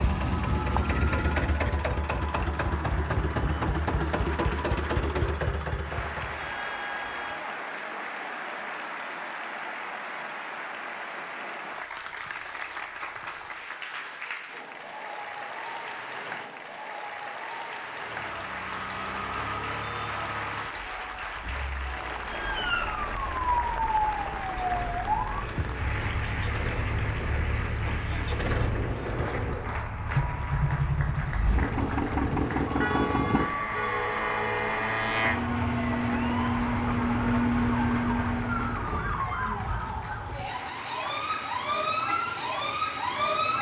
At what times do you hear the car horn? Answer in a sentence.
You can hear the car horn from 6.3 to 7.4 s, from 19.8 to 20.2 s and from 32.8 to 34.8 s.